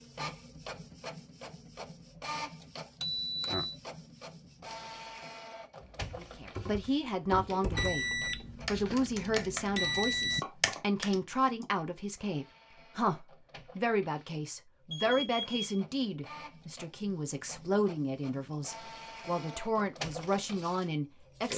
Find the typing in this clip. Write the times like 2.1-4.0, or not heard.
5.8-8.0, 8.6-11.7.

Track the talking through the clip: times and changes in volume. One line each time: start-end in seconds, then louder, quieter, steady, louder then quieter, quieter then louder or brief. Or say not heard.
6.2-21.5 steady.